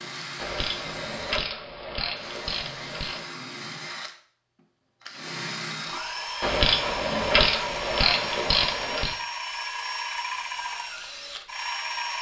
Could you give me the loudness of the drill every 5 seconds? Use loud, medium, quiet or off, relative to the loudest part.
medium, loud, loud.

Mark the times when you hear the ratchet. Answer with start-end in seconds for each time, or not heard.
0.3-3.2, 6.4-9.2.